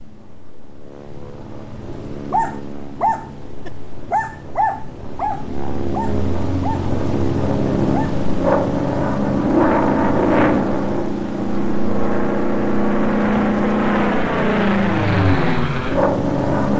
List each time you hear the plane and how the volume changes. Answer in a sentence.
The plane can be heard from 0.0 to 16.7 s, getting louder.